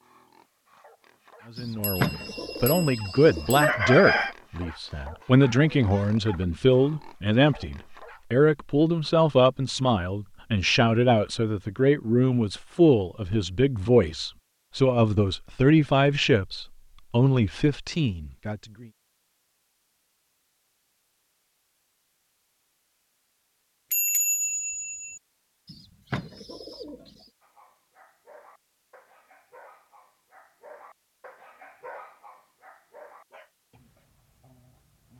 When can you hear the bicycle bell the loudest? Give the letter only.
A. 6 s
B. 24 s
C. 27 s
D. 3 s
B.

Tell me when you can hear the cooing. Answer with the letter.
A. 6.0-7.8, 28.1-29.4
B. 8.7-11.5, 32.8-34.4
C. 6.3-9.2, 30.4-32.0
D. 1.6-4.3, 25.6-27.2
D.